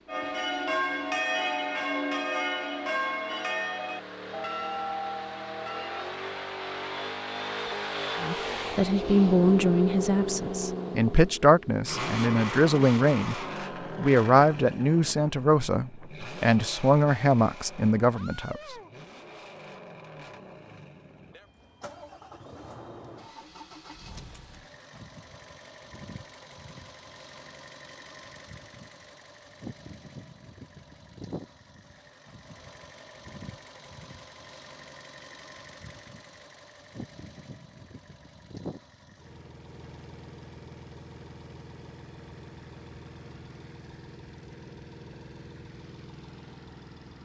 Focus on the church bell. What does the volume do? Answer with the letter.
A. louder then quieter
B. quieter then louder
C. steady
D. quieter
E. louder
D.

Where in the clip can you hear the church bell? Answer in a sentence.
The church bell can be heard from 0.1 to 6.1 s.